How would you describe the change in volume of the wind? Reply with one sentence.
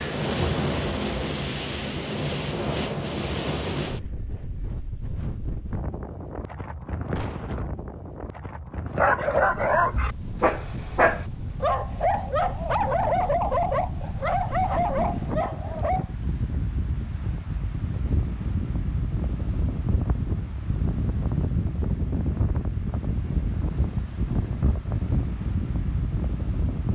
The loudness of the wind goes down, then up.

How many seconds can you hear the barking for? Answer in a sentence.
You can hear the barking for 7 seconds altogether.